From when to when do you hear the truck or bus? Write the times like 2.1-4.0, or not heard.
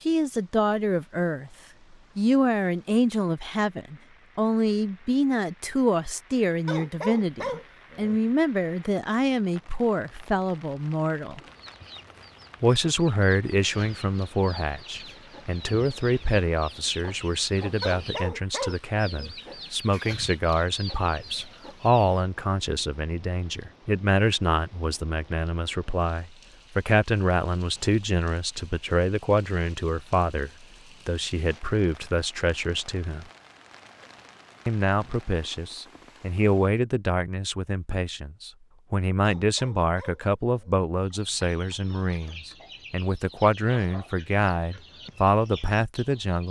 not heard.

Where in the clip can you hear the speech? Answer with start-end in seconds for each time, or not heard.
0.1-1.5, 2.1-11.4, 12.6-33.2, 34.6-46.4.